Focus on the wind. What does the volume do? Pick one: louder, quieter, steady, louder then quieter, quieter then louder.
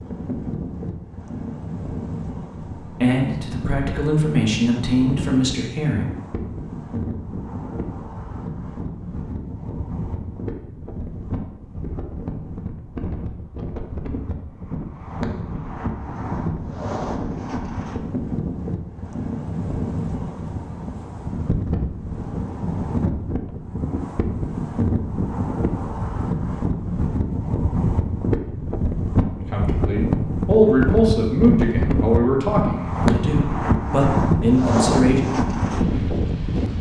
louder.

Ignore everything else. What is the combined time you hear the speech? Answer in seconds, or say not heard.
9 s.